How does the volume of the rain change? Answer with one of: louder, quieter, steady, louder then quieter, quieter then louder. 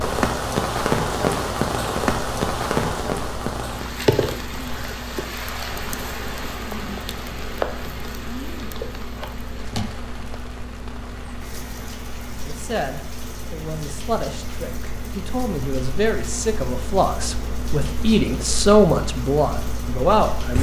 quieter.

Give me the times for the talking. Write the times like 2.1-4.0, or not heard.
12.4-20.5.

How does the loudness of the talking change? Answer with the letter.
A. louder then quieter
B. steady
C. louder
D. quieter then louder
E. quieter
C.